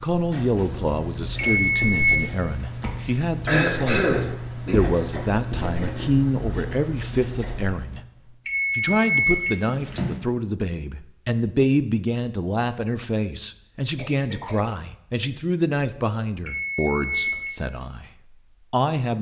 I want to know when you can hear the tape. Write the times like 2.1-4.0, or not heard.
not heard.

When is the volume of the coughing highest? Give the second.
4 s.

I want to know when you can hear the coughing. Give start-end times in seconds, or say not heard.
3.5-4.8, 13.9-14.7.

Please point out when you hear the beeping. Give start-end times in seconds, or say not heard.
1.4-2.2, 8.4-10.2, 16.4-17.5.